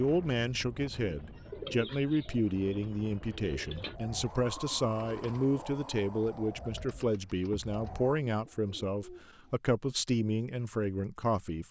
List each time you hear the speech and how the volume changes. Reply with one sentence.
The speech can be heard from 0.0 to 11.6 s, at a steady volume.